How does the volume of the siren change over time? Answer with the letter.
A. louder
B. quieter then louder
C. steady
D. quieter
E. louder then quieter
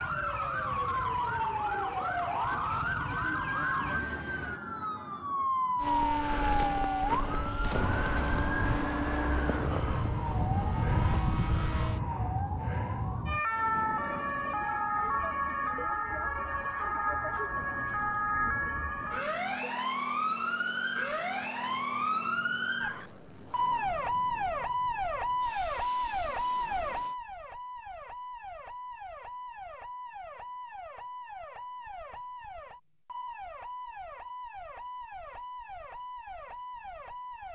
D.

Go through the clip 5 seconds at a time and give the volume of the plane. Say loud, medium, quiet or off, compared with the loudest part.
off, loud, loud, quiet, quiet, quiet, off, off.